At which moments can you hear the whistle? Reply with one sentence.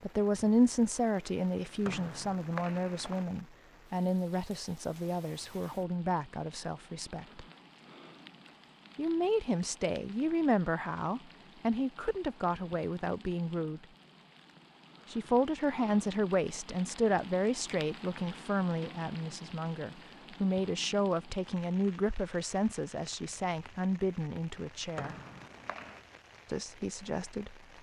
The whistle can be heard from 1.8 to 3.2 s and from 24.9 to 26.1 s.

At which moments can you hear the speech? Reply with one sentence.
You can hear the speech from 0.0 to 7.5 s, from 8.9 to 13.8 s, from 15.1 to 25.1 s and from 26.5 to 27.6 s.